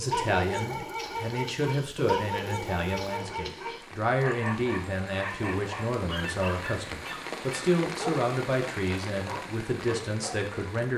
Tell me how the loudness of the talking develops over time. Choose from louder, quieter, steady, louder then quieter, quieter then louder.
steady.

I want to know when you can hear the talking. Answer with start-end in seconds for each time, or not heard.
0.0-10.9.